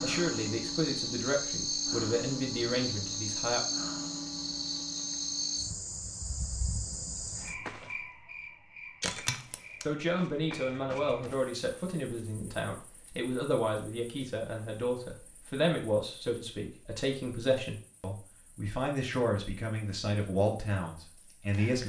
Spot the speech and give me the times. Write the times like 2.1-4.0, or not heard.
0.0-3.6, 9.8-21.8.